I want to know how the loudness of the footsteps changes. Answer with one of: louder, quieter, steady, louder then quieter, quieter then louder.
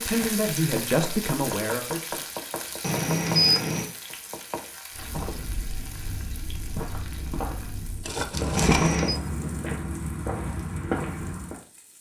louder.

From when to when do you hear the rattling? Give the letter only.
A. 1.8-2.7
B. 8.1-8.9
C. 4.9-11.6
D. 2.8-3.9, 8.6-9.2
B.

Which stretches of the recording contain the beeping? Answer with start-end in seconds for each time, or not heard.
2.8-3.9, 8.6-9.2.